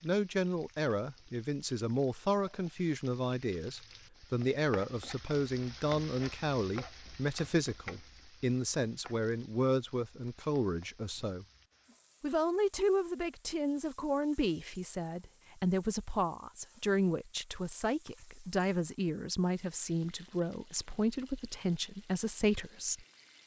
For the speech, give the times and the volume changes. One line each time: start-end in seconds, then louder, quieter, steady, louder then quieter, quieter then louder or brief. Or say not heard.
0.0-11.4 steady
12.2-23.1 steady.